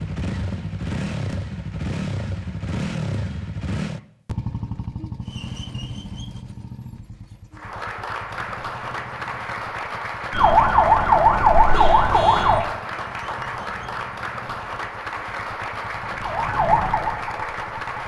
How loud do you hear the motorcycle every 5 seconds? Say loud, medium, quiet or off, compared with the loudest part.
loud, medium, quiet, quiet.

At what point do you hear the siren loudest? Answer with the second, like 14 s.
11 s.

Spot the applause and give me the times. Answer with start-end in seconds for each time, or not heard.
7.5-18.0.